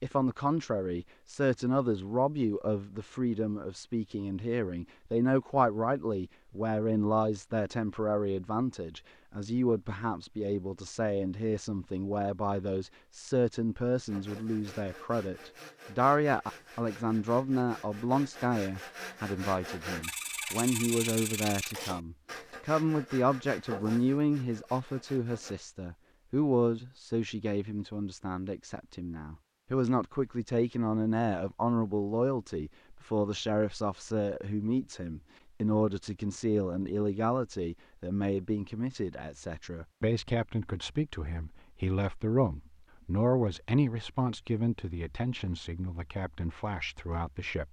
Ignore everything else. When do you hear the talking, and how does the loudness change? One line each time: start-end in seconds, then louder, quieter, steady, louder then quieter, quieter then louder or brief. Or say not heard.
0.0-47.6 steady.